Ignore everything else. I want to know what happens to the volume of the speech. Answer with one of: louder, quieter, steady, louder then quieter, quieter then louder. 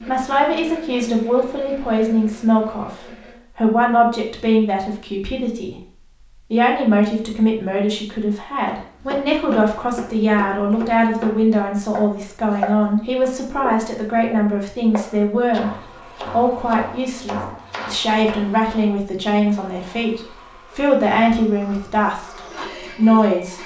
steady.